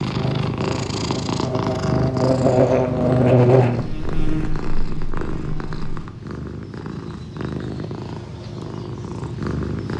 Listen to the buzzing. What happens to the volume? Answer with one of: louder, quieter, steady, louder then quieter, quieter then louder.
louder then quieter.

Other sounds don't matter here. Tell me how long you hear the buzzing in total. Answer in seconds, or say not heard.
6 s.